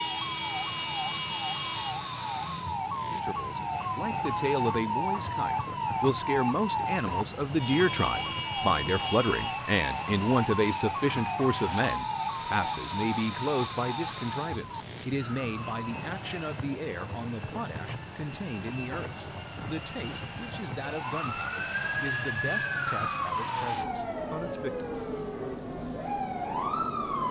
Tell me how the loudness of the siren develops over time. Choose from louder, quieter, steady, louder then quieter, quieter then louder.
quieter then louder.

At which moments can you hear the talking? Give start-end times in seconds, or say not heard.
3.0-24.9.